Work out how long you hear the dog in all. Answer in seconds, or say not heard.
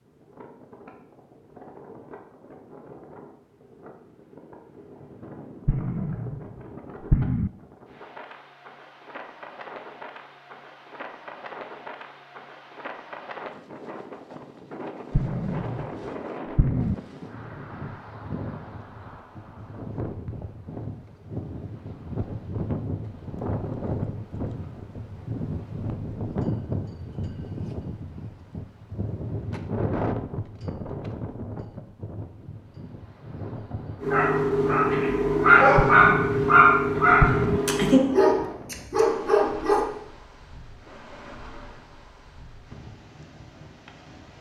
6 s.